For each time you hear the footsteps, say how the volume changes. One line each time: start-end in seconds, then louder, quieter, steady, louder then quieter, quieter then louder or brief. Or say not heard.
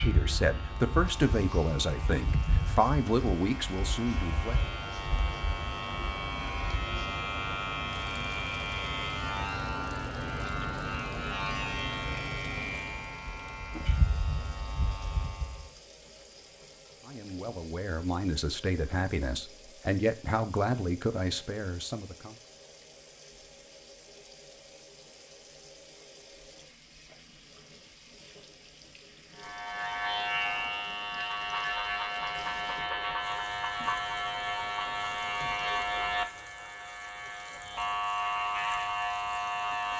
not heard.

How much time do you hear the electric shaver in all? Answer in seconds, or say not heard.
26 s.